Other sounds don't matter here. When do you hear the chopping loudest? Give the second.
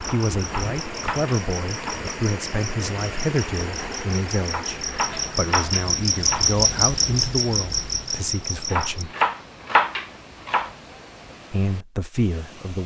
10 s.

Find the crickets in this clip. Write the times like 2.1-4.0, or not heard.
0.0-9.1.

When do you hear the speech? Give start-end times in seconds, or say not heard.
0.0-9.2, 11.5-12.8.